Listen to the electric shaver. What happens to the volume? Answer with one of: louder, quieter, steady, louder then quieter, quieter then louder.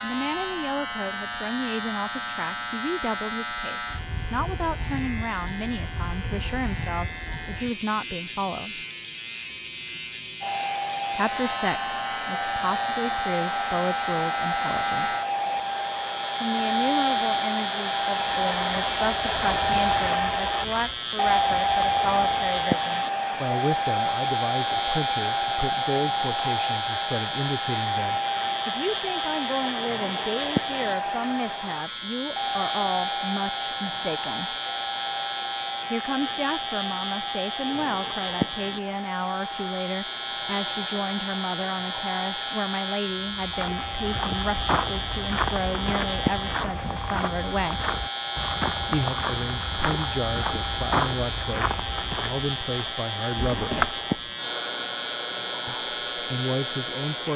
steady.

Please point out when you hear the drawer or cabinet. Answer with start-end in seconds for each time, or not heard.
53.3-54.2.